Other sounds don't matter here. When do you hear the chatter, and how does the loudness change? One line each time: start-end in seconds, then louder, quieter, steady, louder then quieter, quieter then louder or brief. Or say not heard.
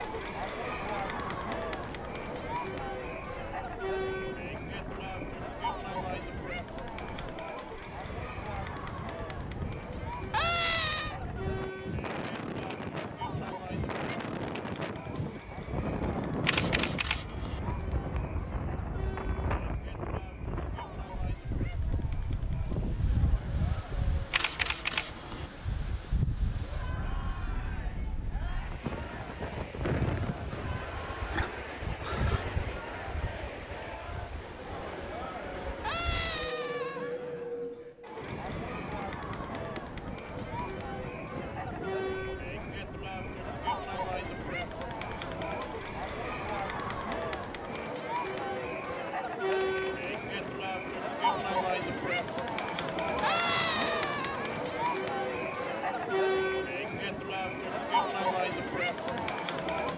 0.0-59.9 quieter then louder.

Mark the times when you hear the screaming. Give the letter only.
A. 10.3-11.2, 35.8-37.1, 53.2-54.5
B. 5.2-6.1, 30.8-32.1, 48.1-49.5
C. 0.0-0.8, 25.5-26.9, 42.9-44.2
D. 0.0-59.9
A.